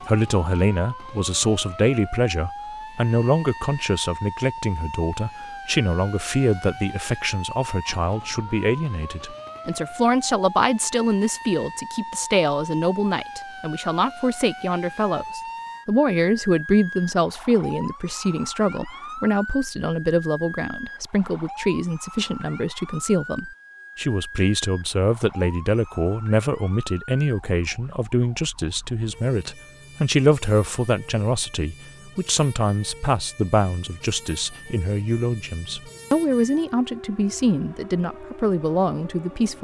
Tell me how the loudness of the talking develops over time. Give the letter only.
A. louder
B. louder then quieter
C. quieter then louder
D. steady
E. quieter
D.